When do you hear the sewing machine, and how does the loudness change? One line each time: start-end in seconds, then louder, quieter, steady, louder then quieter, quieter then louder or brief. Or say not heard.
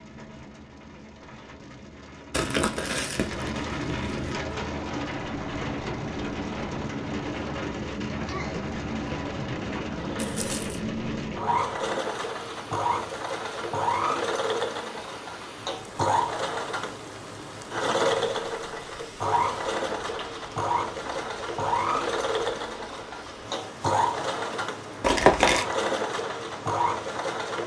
4.7-27.6 louder.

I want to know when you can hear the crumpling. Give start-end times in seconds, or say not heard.
2.3-4.3, 10.2-10.8, 25.0-25.6.